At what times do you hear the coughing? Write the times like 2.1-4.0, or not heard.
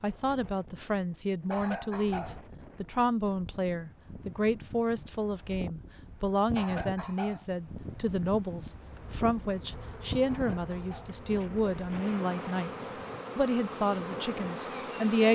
1.5-2.4, 6.5-7.5, 10.2-11.2.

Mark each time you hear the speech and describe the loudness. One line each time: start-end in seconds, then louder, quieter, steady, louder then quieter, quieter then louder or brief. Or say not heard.
0.0-15.3 steady.